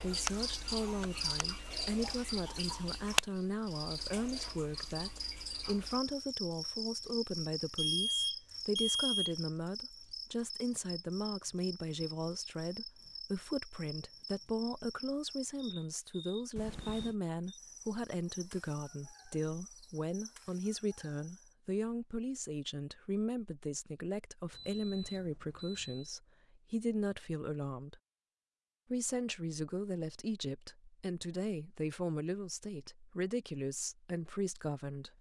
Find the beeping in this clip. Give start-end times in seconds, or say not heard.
7.8-9.3, 16.6-17.1, 24.5-26.1.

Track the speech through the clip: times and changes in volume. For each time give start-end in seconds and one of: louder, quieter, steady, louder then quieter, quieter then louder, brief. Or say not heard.
0.0-28.0 steady
28.9-35.1 steady.